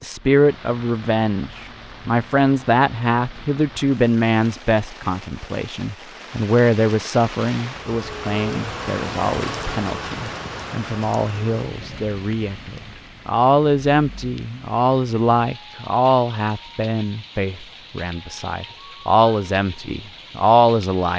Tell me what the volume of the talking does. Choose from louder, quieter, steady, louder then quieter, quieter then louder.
quieter then louder.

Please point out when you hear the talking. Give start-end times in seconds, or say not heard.
0.0-21.1.